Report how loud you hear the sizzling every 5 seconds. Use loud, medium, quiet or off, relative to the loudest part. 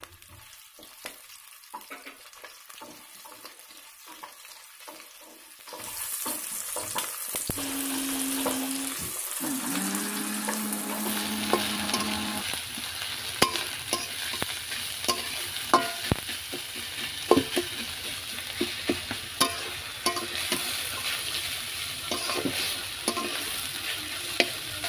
quiet, medium, loud, loud, loud.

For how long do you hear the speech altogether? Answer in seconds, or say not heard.
not heard.